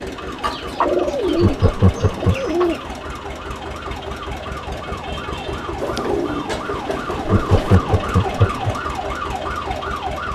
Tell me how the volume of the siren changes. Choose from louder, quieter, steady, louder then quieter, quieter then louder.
louder.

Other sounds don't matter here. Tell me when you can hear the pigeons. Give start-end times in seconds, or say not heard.
0.4-2.8, 5.8-7.8.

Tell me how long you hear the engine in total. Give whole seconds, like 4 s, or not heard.
10 s.